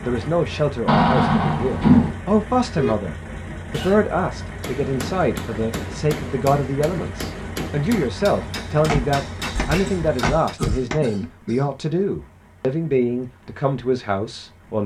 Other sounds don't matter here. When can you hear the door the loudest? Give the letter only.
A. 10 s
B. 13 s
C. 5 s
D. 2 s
D.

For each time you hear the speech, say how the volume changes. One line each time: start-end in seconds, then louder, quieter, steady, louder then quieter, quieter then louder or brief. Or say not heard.
0.1-14.8 steady.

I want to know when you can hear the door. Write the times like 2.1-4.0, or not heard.
0.8-2.1, 8.7-11.0.